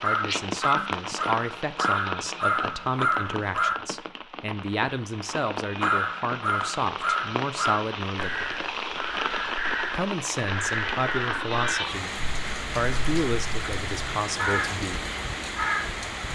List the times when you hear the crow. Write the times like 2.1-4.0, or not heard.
0.0-3.8, 5.8-15.9.